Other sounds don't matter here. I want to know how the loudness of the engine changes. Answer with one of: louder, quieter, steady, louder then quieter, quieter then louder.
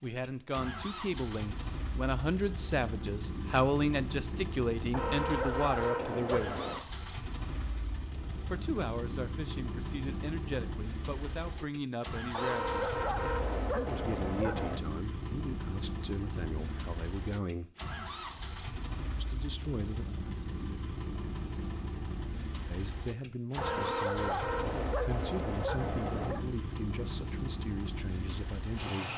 steady.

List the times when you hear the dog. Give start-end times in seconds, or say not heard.
4.9-6.8, 12.3-14.8, 23.6-26.4.